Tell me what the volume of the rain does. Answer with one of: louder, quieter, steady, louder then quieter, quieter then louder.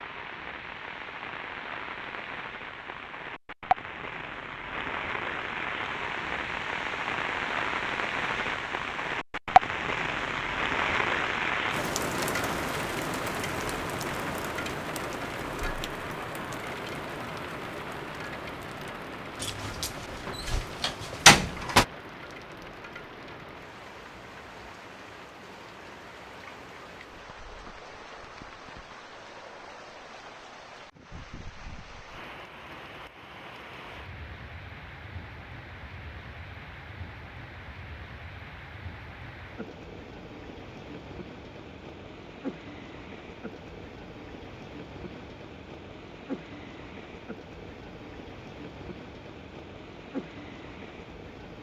quieter.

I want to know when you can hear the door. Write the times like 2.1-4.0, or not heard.
19.4-21.9.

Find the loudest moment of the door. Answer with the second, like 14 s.
21 s.